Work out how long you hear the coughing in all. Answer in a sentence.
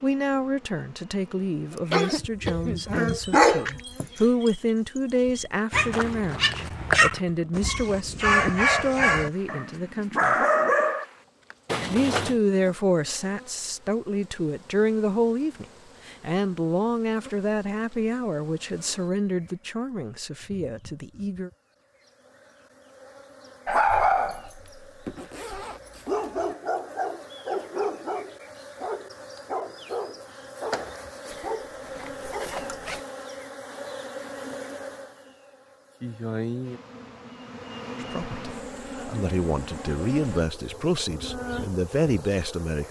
The coughing can be heard for 2 seconds in total.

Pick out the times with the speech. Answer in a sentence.
You can hear the speech from 0.0 to 10.3 s, from 11.9 to 21.5 s and from 38.0 to 42.8 s.